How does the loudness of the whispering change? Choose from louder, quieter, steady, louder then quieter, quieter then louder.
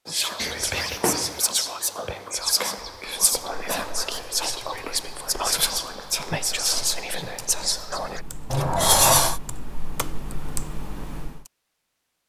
steady.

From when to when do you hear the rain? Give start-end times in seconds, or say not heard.
not heard.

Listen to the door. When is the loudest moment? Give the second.
9 s.